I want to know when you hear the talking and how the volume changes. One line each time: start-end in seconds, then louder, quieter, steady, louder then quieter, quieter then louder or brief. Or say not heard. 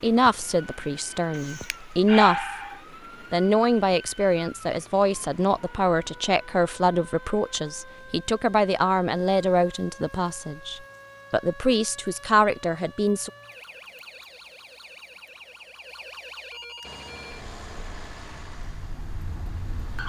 0.0-2.5 brief
3.3-13.3 steady.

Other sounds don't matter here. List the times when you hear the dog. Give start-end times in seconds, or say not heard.
1.3-2.8.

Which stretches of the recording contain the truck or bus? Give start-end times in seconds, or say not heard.
16.8-20.0.